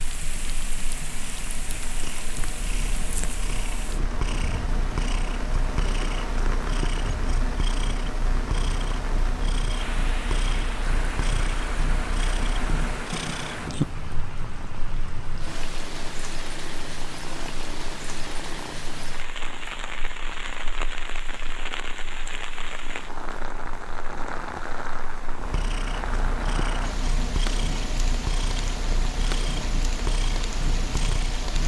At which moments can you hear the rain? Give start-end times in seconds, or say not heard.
0.0-31.6.